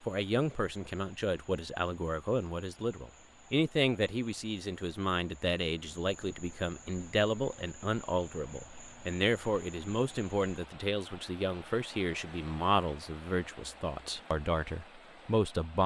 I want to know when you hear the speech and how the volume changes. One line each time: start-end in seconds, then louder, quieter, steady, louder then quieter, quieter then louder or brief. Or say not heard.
0.1-15.8 steady.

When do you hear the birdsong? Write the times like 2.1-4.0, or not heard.
not heard.